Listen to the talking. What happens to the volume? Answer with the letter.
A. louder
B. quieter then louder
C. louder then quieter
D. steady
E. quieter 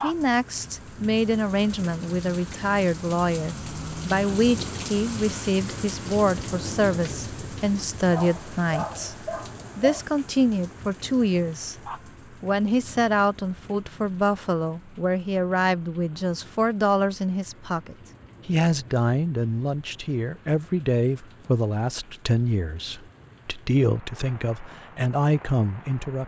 D.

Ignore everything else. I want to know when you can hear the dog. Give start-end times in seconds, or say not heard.
8.1-10.1.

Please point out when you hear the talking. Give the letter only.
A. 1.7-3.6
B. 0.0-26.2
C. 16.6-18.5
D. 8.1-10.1
B.